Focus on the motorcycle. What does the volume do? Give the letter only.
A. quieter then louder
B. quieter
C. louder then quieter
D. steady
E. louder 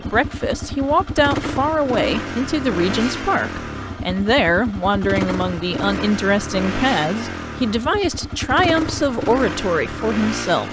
D.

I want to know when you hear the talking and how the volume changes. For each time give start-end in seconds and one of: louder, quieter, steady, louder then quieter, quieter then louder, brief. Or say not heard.
0.0-10.6 steady.